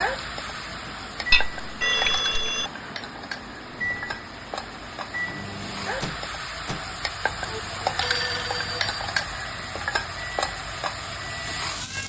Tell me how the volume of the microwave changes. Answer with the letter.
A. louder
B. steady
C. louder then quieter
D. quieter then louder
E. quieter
E.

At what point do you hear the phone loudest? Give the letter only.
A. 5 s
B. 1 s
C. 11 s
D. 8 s
B.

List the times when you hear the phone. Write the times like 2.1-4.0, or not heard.
0.8-2.7, 7.5-8.9.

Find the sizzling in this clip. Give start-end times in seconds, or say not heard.
0.0-12.0.